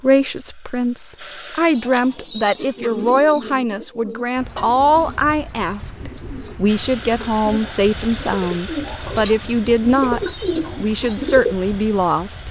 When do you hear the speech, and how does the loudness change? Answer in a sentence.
You can hear the speech from 0.0 to 12.4 s, at a steady volume.